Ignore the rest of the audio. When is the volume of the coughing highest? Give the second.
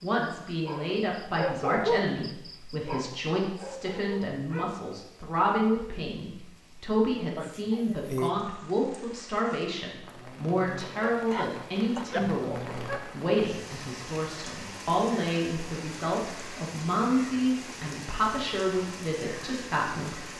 8 s.